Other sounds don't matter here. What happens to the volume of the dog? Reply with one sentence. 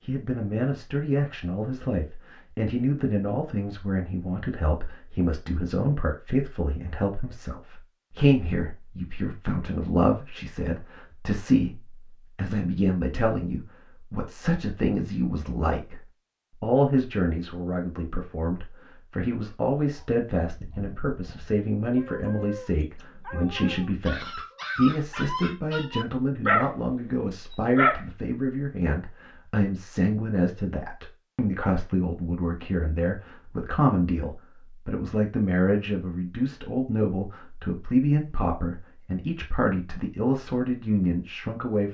The volume of the dog goes up.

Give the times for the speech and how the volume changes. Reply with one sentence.
The speech can be heard from 0.1 to 41.8 s, at a steady volume.